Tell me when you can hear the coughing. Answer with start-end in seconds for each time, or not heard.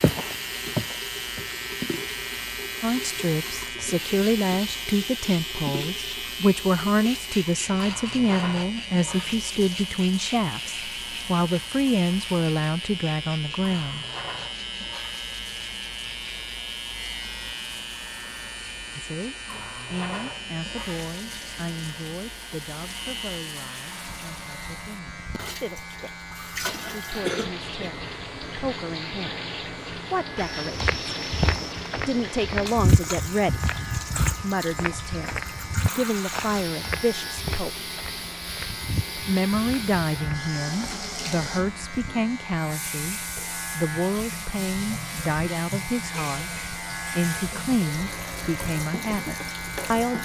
26.7-27.9.